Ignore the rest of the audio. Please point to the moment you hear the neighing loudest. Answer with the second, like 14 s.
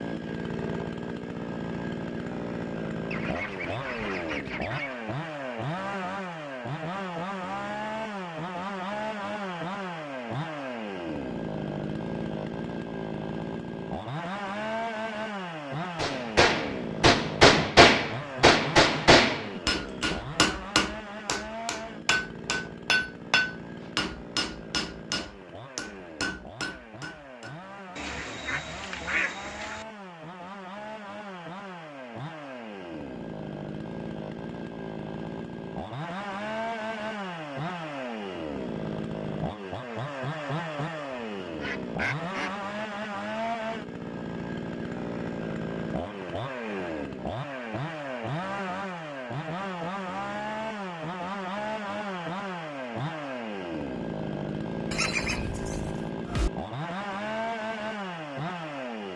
55 s.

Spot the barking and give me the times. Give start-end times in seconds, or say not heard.
not heard.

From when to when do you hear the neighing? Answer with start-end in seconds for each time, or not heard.
54.9-56.5.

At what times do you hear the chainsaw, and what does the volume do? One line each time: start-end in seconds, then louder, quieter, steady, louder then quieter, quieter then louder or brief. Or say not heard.
0.0-59.1 quieter then louder.